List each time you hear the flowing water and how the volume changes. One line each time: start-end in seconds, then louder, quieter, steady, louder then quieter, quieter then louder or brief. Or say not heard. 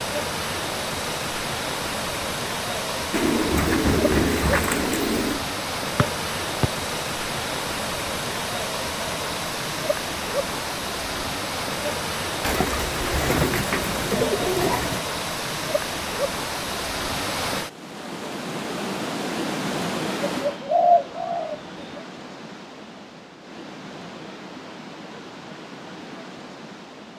0.0-27.1 quieter.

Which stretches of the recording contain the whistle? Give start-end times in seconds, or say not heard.
6.0-6.7.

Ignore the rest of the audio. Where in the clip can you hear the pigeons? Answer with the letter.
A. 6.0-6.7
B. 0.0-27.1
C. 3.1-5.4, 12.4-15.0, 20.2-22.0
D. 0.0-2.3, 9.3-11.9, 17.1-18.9
C.